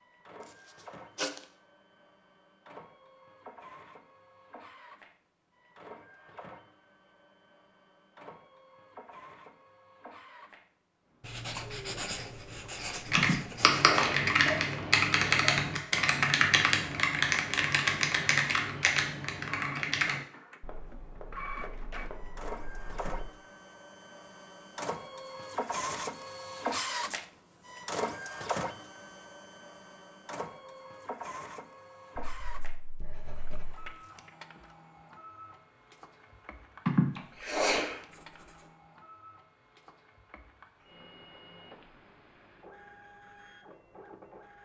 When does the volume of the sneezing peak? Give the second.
37 s.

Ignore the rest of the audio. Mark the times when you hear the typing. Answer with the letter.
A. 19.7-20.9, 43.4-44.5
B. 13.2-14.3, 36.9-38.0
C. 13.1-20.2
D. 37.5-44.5
C.